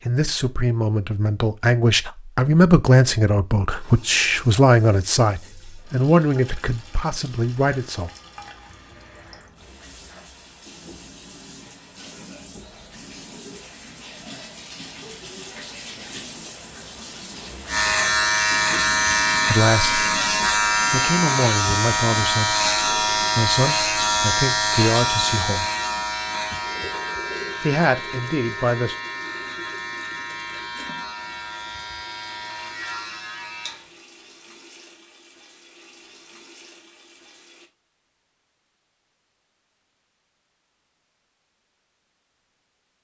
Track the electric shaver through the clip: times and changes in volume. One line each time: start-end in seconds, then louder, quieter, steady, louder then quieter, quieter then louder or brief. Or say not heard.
17.6-34.0 quieter.